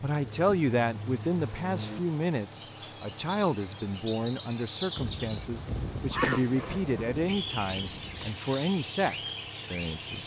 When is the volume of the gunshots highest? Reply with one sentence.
The loudest moment of the gunshots is at 6 seconds.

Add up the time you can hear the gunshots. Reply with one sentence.
You can hear the gunshots for 3 seconds altogether.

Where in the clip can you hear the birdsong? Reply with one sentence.
You can hear the birdsong from 0.1 to 5.5 s and from 6.1 to 10.2 s.